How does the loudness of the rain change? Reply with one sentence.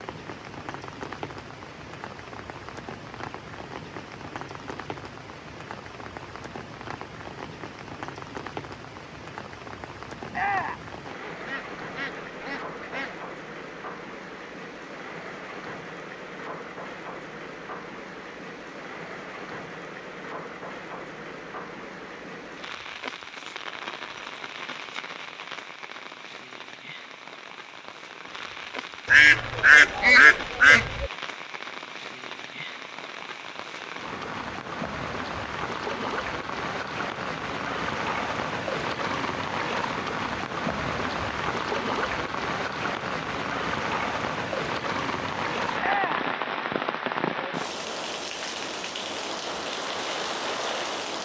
The volume of the rain goes up.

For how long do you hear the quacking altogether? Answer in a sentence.
The quacking can be heard for 4 seconds in total.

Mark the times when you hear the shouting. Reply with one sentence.
You can hear the shouting from 10.3 to 10.8 s and from 45.8 to 46.3 s.